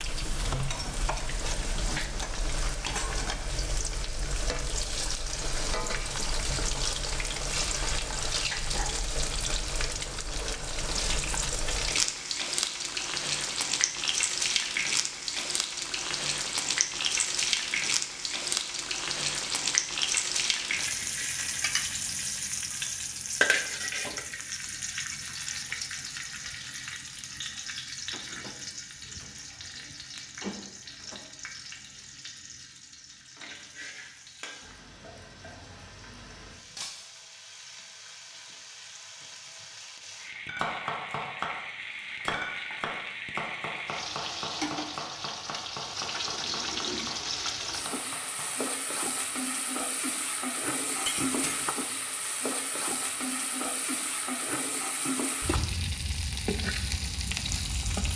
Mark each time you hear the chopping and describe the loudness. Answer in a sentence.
The chopping can be heard from 40.5 to 48.7 s, getting quieter.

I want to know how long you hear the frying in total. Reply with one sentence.
The frying can be heard for 58 seconds in total.